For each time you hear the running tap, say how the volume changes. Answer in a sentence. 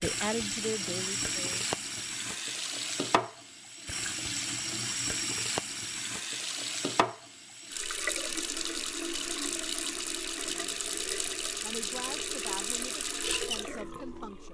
The running tap can be heard from 0.0 to 14.4 s, at a steady volume.